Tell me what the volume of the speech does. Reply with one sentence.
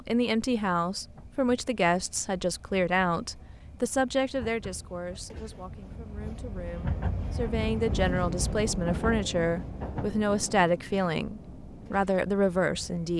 The loudness of the speech goes down, then up.